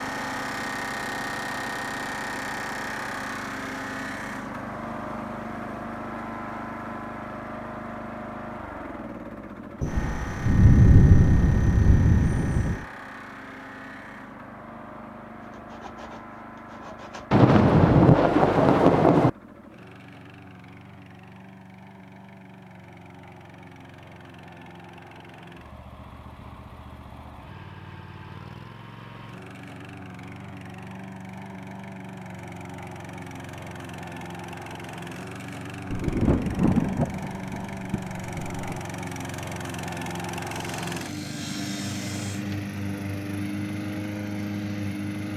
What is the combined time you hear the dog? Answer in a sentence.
You can't hear the dog here.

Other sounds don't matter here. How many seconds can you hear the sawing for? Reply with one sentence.
You can hear the sawing for 4 seconds altogether.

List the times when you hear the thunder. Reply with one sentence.
You can hear the thunder from 9.8 to 12.8 s, from 17.3 to 19.3 s and from 35.9 to 38.8 s.